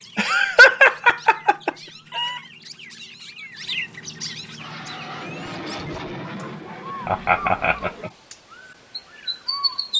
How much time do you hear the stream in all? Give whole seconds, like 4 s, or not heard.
not heard.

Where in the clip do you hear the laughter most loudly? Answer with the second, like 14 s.
1 s.